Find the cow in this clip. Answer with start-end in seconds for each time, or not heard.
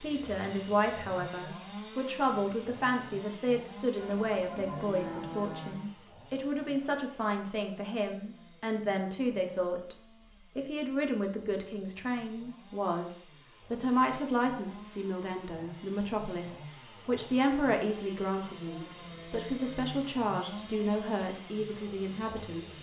4.0-5.8.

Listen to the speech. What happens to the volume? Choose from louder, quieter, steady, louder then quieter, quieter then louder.
steady.